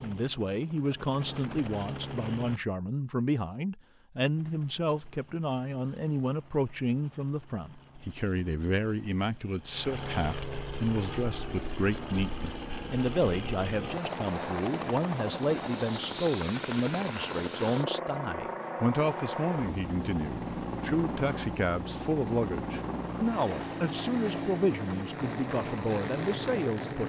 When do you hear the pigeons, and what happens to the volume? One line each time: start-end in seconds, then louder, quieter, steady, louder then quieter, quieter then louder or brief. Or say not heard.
not heard.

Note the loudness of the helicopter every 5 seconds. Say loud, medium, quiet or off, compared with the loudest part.
medium, quiet, loud, loud, loud, loud.